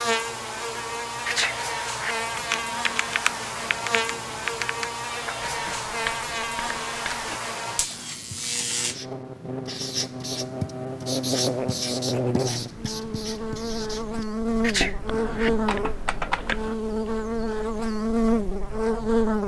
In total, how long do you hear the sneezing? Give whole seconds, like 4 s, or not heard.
2 s.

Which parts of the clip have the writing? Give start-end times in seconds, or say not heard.
5.4-15.9.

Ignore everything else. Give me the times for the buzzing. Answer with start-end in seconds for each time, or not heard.
0.0-19.4.